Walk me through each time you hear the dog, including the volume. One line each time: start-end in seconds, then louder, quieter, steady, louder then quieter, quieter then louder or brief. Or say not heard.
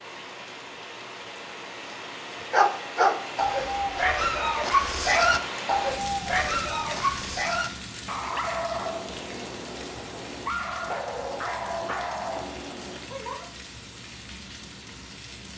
2.4-13.2 quieter.